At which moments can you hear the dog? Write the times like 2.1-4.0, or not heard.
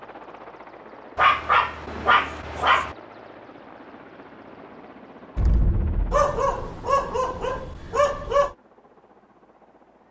1.1-3.0, 6.1-8.6.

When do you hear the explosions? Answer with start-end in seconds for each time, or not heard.
5.3-6.7.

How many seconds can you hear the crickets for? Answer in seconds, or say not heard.
not heard.